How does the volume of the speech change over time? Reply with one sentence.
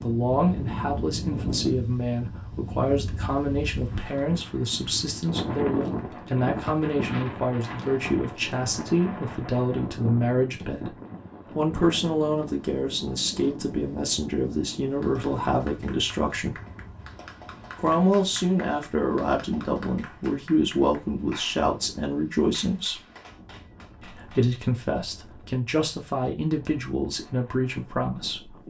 The loudness of the speech stays about the same.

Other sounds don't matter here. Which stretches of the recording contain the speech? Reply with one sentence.
The speech can be heard from 0.0 to 10.9 s, from 11.6 to 16.6 s, from 17.8 to 23.0 s and from 24.0 to 28.6 s.